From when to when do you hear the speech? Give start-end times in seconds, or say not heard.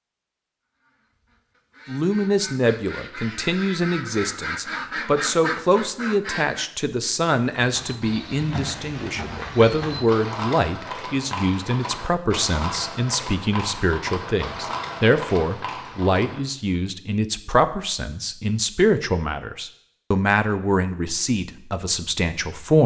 1.9-22.8.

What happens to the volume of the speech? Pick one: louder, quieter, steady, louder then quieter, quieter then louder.
steady.